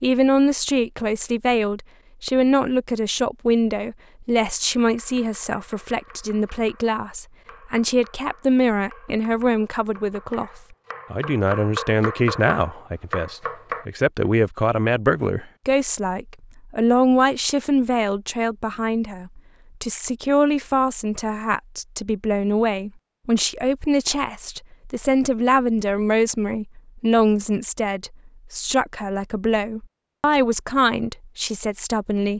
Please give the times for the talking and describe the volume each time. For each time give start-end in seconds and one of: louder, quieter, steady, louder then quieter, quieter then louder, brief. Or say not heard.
0.0-10.5 steady
11.1-32.3 steady.